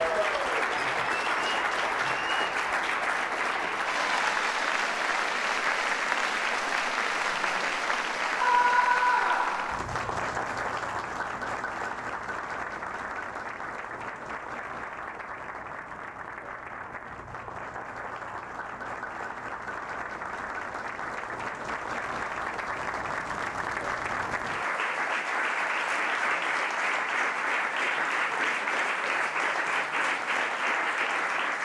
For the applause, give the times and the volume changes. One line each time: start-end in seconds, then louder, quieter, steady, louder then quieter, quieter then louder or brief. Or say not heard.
0.0-31.6 quieter then louder.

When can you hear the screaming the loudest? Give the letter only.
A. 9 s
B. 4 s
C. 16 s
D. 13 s
A.